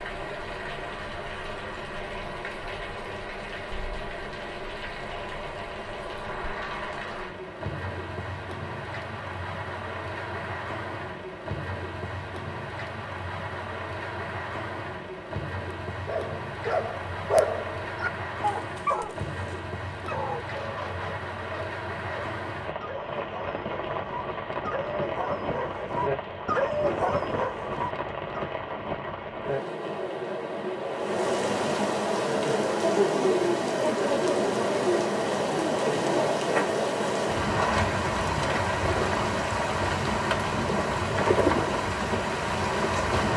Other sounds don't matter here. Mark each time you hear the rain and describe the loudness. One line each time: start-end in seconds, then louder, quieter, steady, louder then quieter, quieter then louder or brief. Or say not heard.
0.0-43.3 louder.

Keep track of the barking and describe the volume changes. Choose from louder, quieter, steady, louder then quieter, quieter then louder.
quieter then louder.